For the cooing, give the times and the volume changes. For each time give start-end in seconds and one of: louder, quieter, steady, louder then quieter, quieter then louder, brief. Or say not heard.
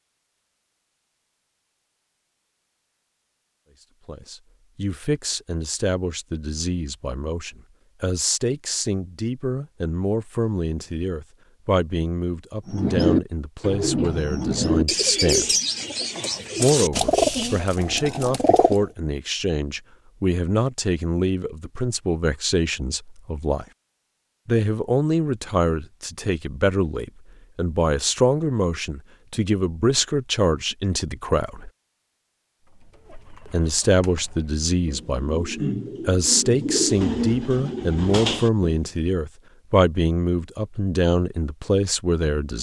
12.7-18.9 quieter
32.6-38.8 louder.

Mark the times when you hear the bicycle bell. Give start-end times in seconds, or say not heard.
not heard.